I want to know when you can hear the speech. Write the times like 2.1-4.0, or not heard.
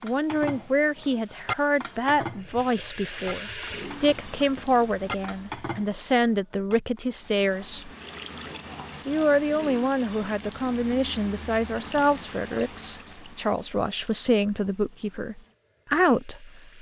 0.0-7.9, 9.1-16.6.